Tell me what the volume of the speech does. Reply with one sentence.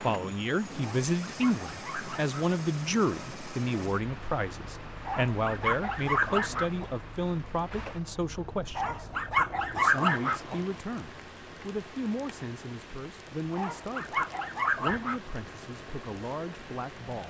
The loudness of the speech goes down.